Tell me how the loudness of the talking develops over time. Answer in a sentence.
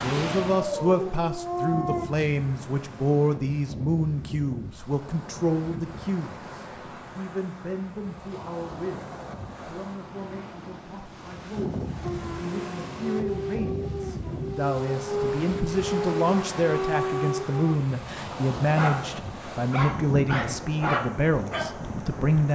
The loudness of the talking goes down, then up.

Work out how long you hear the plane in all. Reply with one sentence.
The plane can't be heard in this clip.